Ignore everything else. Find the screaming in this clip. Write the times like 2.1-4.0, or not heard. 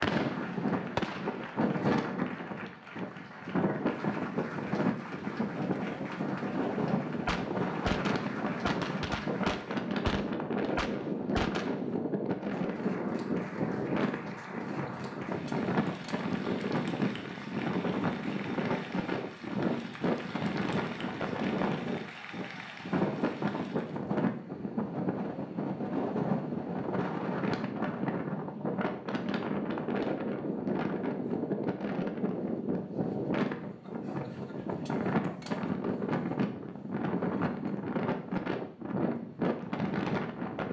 not heard.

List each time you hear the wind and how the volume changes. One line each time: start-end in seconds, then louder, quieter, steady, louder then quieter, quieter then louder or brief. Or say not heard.
0.0-40.6 steady.